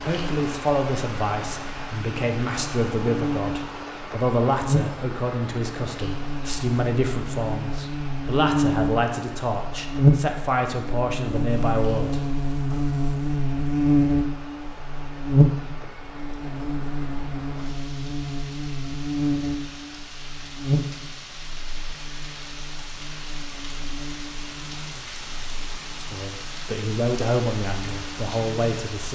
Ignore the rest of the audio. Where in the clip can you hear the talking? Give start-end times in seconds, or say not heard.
0.0-12.8, 26.0-29.0.